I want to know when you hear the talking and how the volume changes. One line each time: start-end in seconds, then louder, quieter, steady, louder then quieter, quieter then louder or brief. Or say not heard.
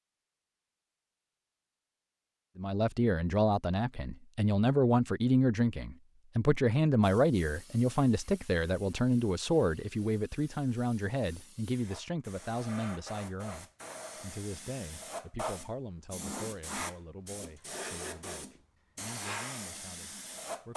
2.5-20.7 quieter.